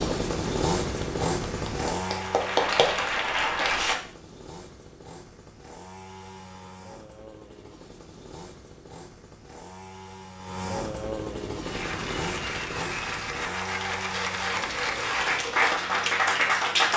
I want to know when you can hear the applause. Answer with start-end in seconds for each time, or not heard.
0.2-4.0, 11.5-16.9.